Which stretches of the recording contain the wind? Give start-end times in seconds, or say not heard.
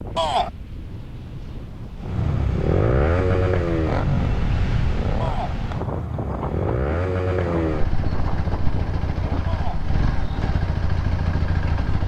0.0-9.4.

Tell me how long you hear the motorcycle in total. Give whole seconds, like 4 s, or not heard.
10 s.